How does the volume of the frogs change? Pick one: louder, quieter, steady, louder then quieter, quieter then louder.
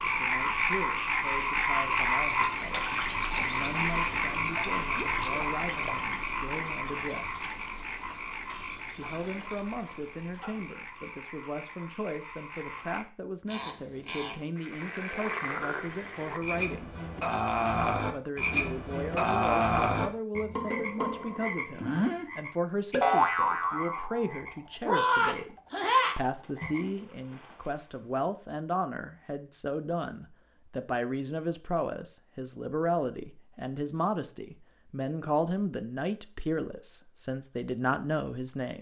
quieter then louder.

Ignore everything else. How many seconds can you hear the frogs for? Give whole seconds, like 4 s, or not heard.
27 s.